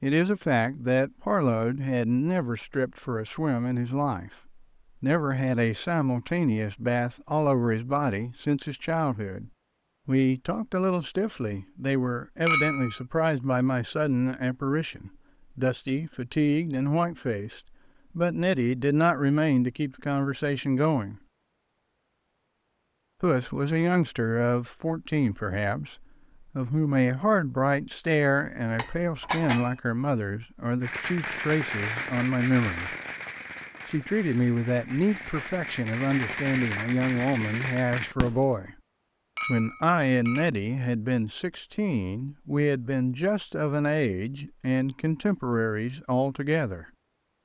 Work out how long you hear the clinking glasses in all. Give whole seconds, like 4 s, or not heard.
3 s.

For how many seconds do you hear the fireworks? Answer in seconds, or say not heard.
8 s.